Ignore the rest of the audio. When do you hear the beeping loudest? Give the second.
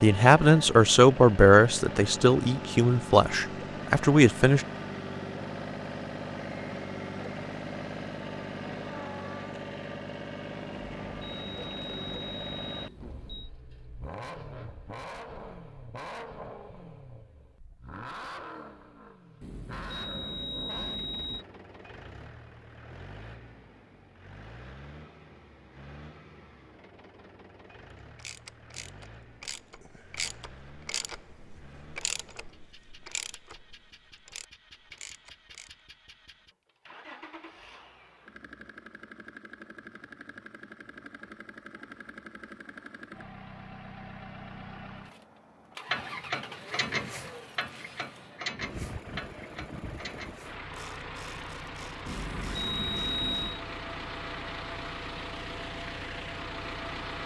53 s.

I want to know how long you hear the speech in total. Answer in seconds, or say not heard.
5 s.